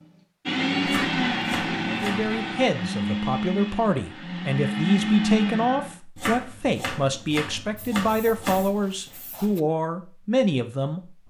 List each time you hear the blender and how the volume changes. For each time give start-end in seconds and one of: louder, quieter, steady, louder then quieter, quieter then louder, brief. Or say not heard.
0.5-6.0 quieter then louder.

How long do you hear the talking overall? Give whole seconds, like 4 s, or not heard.
9 s.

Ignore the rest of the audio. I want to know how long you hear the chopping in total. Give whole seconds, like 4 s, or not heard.
4 s.